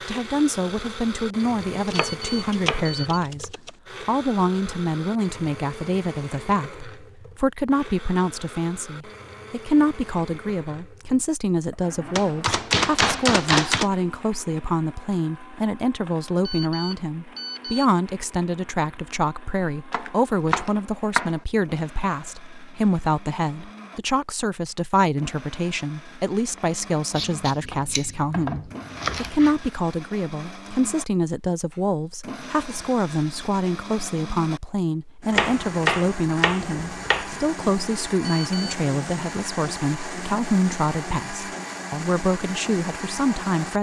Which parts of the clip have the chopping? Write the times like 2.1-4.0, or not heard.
1.9-3.7, 12.2-13.9, 19.9-21.4, 27.1-29.6, 35.3-37.4.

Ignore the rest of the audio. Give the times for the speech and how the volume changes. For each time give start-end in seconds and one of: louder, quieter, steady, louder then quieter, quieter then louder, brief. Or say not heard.
0.1-43.7 steady.